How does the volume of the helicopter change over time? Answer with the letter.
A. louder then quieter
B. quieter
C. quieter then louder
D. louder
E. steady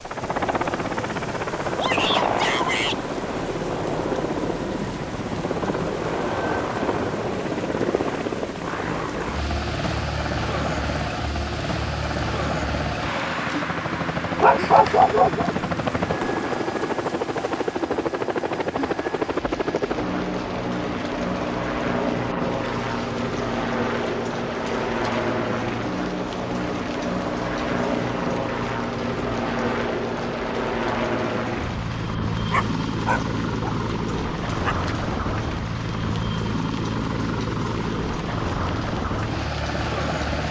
E.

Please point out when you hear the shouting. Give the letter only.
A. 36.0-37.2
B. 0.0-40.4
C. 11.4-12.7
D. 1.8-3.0
D.